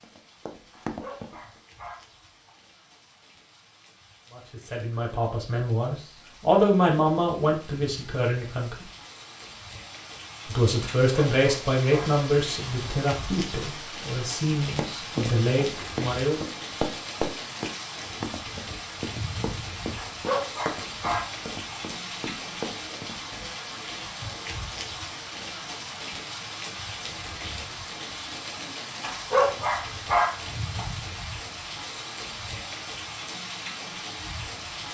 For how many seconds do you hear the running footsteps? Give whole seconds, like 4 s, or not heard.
10 s.